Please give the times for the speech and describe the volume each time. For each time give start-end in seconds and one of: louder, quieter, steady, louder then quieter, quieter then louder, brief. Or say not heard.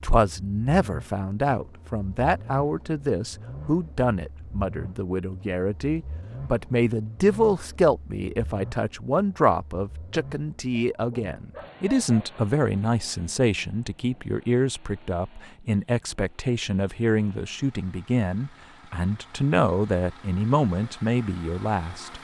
0.0-22.1 steady.